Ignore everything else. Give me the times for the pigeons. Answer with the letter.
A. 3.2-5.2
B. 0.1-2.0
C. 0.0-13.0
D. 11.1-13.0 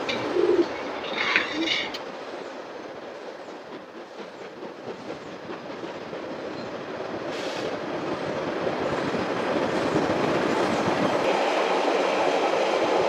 B.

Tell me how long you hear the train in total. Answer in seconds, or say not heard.
13 s.